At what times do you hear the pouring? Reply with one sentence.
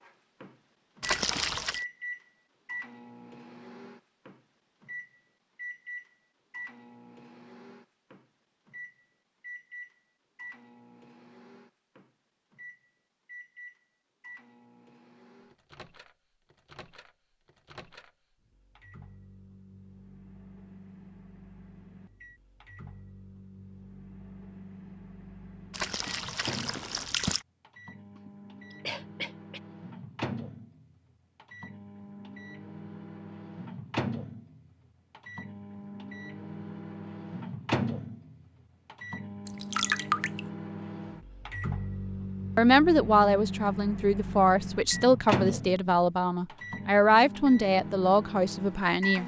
The pouring can be heard from 1.0 to 1.9 s, from 25.7 to 27.4 s and from 39.5 to 40.4 s.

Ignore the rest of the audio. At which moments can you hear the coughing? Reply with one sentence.
You can hear the coughing from 28.1 to 29.6 s.